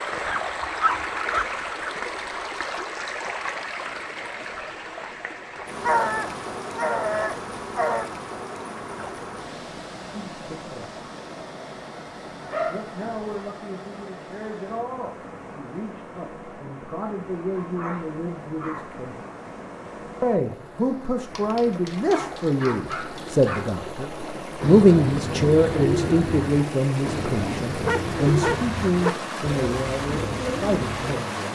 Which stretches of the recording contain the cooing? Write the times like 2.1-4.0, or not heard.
24.6-31.2.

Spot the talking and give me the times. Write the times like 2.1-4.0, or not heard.
10.1-11.1, 12.7-19.1, 20.2-31.5.